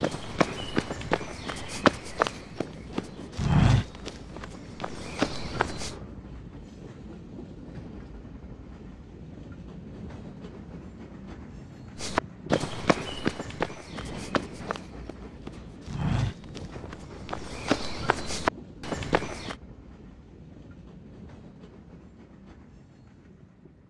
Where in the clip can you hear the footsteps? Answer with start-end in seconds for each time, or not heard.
0.0-6.0, 11.9-19.6.